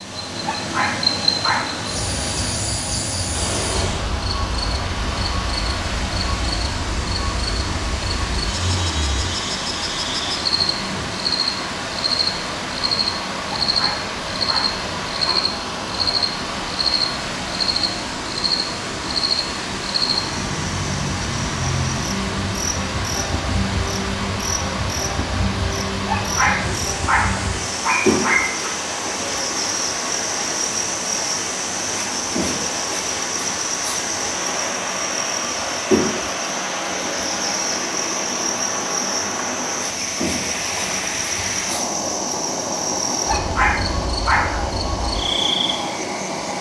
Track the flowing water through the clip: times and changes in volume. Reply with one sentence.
The flowing water can be heard from 0.0 to 46.5 s, at a steady volume.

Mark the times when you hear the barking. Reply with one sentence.
You can hear the barking from 0.4 to 1.9 s, from 13.7 to 15.6 s, from 26.0 to 28.8 s and from 43.2 to 44.8 s.